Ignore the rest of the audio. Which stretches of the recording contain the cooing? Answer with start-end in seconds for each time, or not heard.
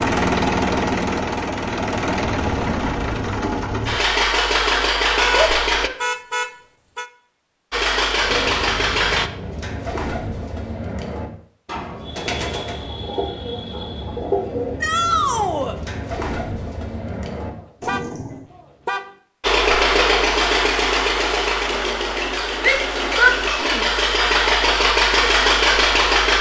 8.1-18.5.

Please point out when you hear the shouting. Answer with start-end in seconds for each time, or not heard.
5.3-6.0, 14.8-15.8, 22.6-23.9.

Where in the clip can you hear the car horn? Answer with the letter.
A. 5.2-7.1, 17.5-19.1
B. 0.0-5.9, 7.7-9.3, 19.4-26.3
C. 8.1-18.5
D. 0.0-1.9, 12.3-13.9
A.